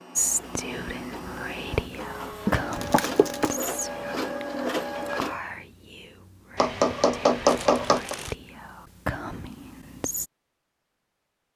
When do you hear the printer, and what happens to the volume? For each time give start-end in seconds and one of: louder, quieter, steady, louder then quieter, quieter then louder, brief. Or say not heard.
0.0-5.4 louder.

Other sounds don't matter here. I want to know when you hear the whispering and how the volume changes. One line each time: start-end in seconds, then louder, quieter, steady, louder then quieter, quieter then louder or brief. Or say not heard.
0.1-10.3 quieter then louder.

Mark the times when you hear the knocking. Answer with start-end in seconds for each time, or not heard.
2.5-3.5, 6.5-8.2.